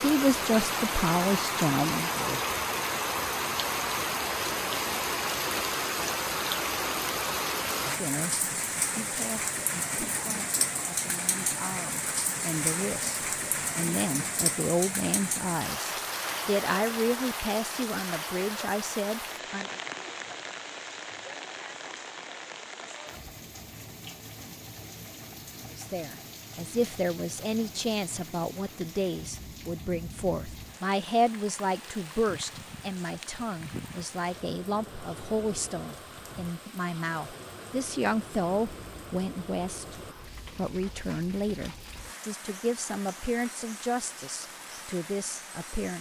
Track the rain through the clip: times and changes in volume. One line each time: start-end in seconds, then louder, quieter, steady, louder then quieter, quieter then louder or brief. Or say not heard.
0.0-45.9 quieter.